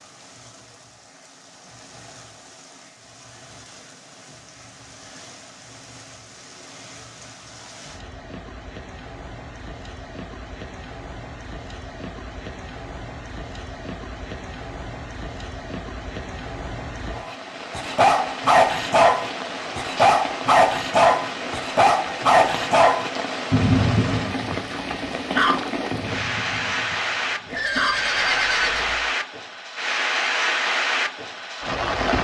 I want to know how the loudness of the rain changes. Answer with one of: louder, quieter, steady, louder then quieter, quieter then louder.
louder.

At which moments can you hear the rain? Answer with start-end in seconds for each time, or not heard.
0.0-32.1.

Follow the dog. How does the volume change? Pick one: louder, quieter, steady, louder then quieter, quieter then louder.
quieter.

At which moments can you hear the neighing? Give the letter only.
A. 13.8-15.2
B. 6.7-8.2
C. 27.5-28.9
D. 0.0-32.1
C.